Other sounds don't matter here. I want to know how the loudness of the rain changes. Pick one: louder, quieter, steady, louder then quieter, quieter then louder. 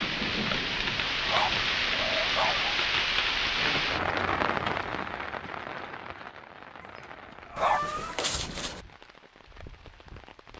quieter.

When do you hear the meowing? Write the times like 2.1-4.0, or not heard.
1.6-2.8, 7.5-8.8.